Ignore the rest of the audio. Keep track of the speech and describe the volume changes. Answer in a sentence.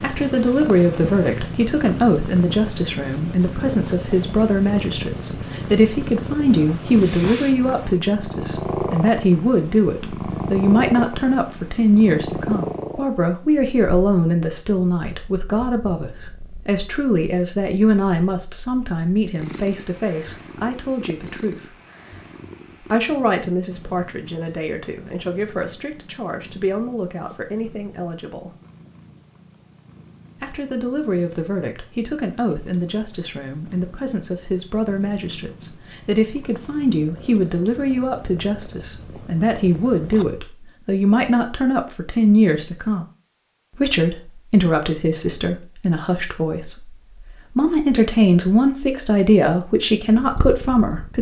The loudness of the speech goes down, then up.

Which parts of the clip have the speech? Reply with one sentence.
The speech can be heard from 0.0 to 21.6 s, from 22.9 to 28.5 s, from 30.4 to 43.0 s and from 43.8 to 51.1 s.